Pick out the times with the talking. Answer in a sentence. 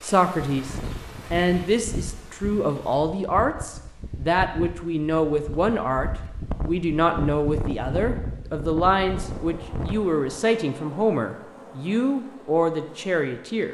You can hear the talking from 0.0 to 13.6 s.